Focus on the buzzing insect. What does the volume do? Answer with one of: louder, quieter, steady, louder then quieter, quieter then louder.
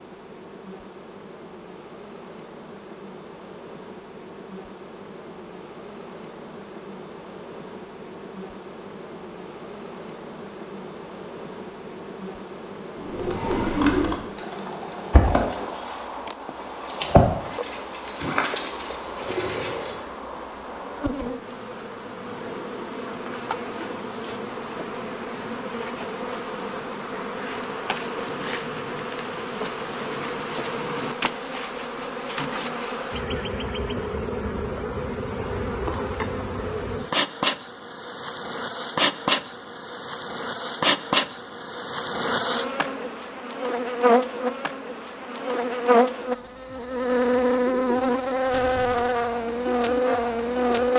louder.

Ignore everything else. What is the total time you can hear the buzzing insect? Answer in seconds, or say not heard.
51 s.